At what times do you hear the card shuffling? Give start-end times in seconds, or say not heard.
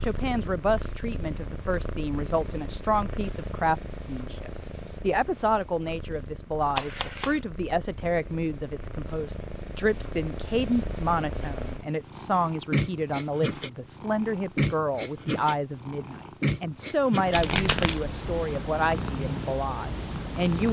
6.8-7.4, 17.3-18.2.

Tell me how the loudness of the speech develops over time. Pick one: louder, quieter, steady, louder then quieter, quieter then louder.
steady.